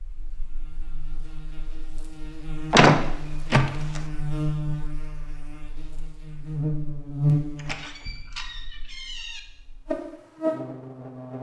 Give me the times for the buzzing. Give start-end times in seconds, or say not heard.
0.0-11.3.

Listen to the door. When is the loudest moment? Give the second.
3 s.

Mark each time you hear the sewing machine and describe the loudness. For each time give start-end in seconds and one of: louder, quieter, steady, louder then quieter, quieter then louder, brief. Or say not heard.
not heard.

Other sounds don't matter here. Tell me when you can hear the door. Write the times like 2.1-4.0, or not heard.
2.7-4.0, 7.5-9.4.